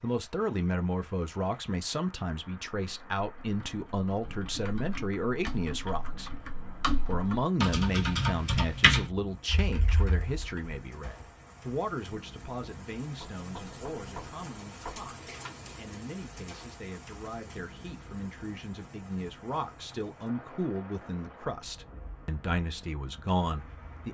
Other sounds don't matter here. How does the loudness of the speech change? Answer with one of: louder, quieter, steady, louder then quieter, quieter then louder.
quieter then louder.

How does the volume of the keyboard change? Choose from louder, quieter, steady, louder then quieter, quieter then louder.
louder then quieter.